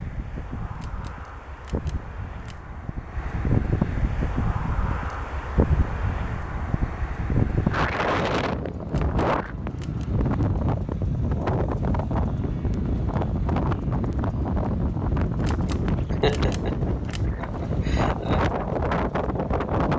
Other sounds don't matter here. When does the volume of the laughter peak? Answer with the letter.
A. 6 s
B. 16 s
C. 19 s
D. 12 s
B.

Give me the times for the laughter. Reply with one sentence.
You can hear the laughter from 15.7 to 18.4 s.